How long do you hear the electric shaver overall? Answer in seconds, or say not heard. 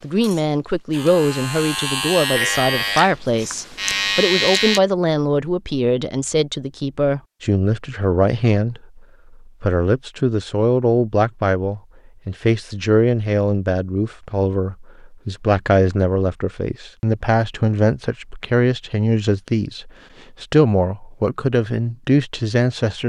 5 s.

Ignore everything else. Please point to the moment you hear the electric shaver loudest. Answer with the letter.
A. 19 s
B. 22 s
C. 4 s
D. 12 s
C.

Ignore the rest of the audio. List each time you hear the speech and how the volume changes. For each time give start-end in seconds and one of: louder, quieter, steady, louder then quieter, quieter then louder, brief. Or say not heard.
0.0-23.0 steady.